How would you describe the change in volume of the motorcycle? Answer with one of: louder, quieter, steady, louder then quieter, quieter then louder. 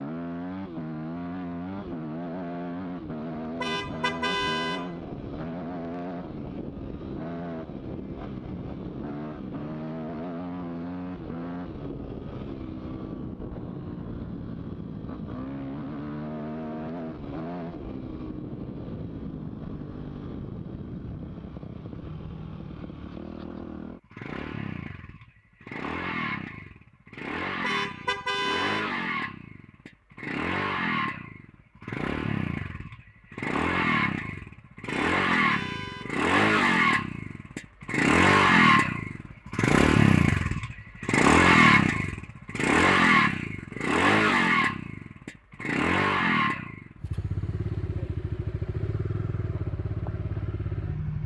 louder.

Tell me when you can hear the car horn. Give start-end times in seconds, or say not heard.
3.6-5.0, 27.6-29.0, 34.9-36.2.